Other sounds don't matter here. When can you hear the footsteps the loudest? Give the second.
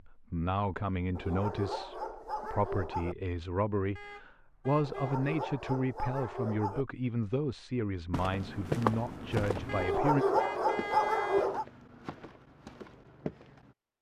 9 s.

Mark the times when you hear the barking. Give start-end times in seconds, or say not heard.
1.1-3.1, 4.8-6.8, 9.8-11.7.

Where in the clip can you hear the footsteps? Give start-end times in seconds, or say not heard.
8.1-13.8.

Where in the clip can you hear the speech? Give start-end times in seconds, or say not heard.
0.0-10.2.